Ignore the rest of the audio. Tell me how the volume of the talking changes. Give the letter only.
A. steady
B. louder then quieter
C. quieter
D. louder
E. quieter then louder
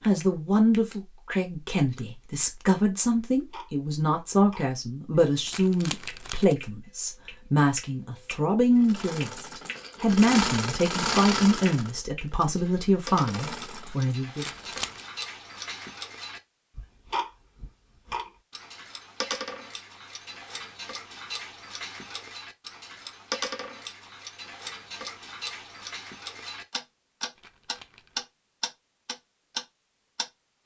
A.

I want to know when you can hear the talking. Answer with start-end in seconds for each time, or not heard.
0.0-14.4.